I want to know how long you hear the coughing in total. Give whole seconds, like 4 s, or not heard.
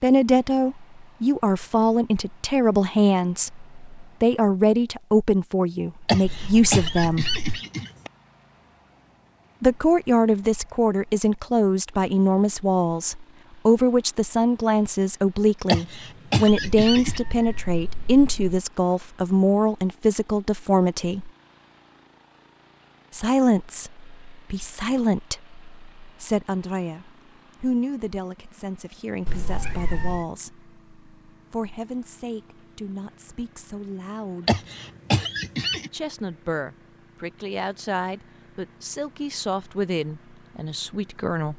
5 s.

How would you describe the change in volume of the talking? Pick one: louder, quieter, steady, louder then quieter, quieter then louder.
quieter.